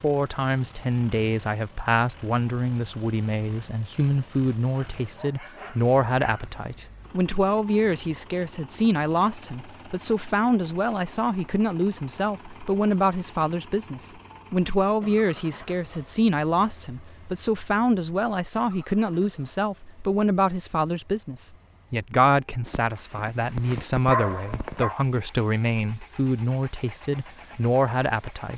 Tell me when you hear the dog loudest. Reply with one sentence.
The loudest moment of the dog is at 24 seconds.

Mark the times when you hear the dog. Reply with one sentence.
The dog can be heard from 4.8 to 6.5 s and from 22.6 to 24.9 s.